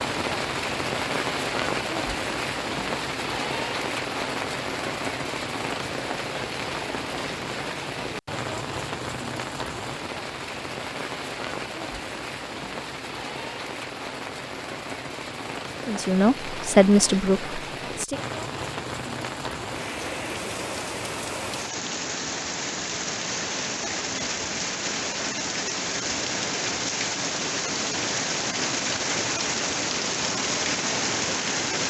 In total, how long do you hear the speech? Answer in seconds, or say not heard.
2 s.